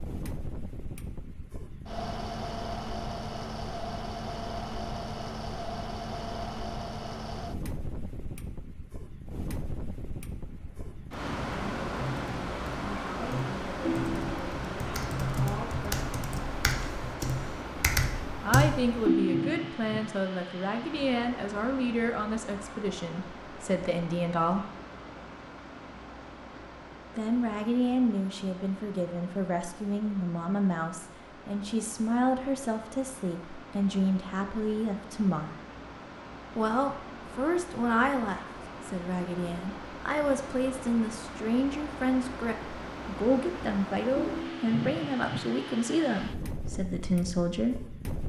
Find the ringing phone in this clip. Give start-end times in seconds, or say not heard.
13.8-14.4, 19.1-19.8, 44.1-44.8.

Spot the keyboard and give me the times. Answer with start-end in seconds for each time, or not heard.
10.4-19.1.